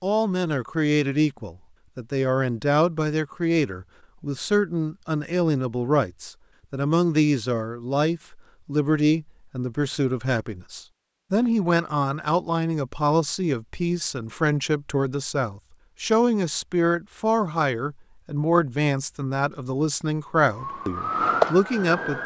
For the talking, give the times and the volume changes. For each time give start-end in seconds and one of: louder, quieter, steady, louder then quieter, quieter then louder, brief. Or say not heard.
0.0-22.2 steady.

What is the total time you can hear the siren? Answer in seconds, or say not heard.
2 s.